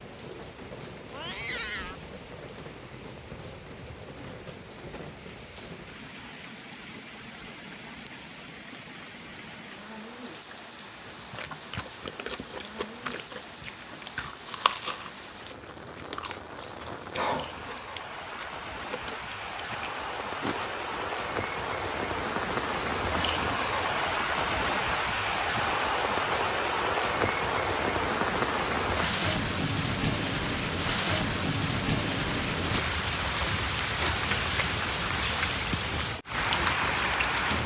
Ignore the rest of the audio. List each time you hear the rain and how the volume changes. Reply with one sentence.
You can hear the rain from 0.0 to 37.6 s, getting louder.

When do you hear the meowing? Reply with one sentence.
The meowing can be heard from 1.1 to 2.0 s.